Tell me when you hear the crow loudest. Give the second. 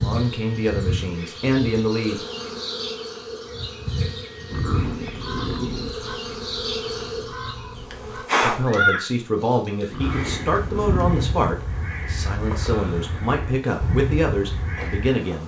9 s.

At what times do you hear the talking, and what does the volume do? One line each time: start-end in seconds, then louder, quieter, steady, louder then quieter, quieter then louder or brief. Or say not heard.
0.0-2.2 brief
8.4-15.4 steady.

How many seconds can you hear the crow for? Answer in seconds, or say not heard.
10 s.